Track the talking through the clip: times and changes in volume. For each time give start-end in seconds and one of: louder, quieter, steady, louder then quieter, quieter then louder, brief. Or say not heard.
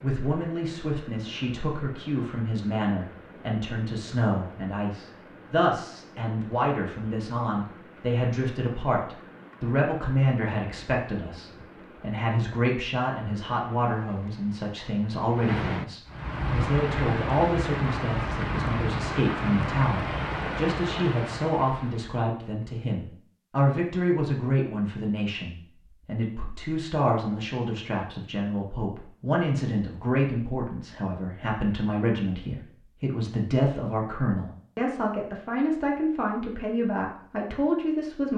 0.0-38.3 steady.